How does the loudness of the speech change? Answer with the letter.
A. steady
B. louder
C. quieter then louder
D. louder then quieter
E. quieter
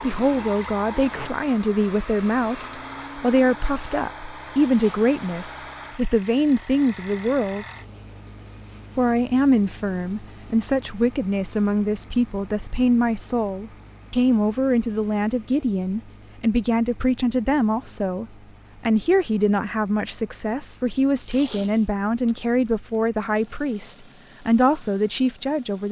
A.